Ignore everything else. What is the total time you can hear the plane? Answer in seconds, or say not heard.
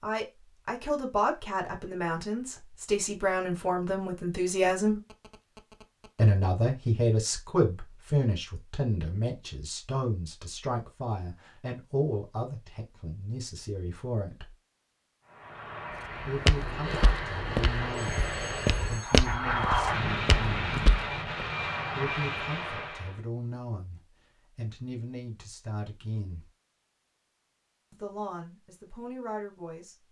8 s.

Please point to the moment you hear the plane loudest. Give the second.
20 s.